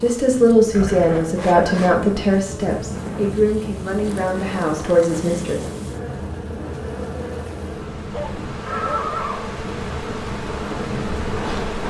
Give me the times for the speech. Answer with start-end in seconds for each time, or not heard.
0.0-5.6.